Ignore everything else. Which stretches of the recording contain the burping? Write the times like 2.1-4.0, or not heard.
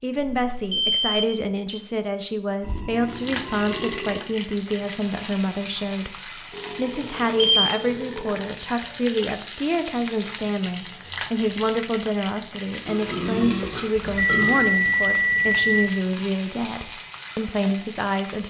2.6-4.2, 6.5-8.6, 12.8-14.7.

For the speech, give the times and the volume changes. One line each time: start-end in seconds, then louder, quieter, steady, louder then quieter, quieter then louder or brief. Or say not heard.
0.0-18.4 steady.